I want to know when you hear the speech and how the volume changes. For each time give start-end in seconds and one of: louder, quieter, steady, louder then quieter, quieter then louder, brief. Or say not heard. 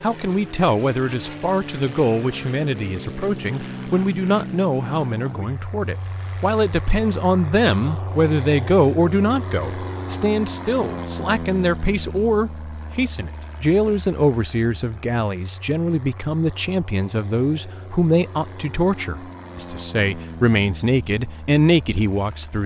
0.0-22.6 steady.